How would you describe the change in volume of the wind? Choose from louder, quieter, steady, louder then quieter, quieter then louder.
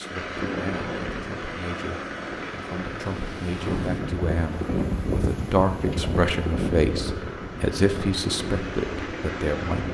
louder then quieter.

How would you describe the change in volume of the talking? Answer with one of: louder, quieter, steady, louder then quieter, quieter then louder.
louder.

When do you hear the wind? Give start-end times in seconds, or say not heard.
0.2-9.9.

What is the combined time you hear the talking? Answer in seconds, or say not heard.
10 s.